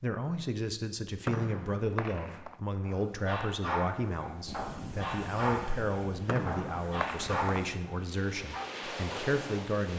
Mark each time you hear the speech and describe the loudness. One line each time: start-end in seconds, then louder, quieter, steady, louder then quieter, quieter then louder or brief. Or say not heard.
0.0-9.9 steady.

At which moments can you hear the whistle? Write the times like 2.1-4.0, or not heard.
1.2-2.6, 6.2-7.5.